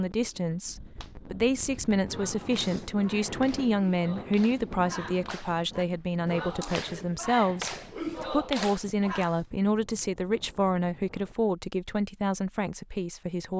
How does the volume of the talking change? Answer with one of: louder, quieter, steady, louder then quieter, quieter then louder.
steady.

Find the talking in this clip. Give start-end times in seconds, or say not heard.
0.0-13.5.